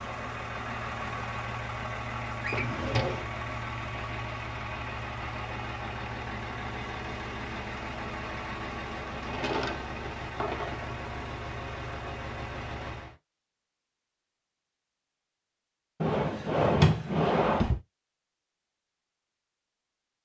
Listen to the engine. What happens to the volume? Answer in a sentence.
The volume of the engine stays about the same.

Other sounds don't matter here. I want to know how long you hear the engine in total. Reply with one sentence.
The engine can be heard for 13 seconds in total.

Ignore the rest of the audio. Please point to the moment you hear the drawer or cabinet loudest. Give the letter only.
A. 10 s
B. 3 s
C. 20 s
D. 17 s
D.